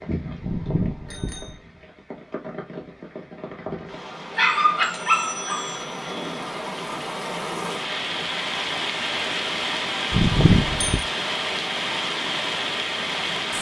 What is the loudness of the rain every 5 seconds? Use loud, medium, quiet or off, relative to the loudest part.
medium, loud, loud.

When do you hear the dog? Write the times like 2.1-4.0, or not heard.
4.3-5.8.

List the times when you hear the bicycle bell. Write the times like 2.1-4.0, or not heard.
0.4-1.6, 5.2-6.5, 10.1-11.1.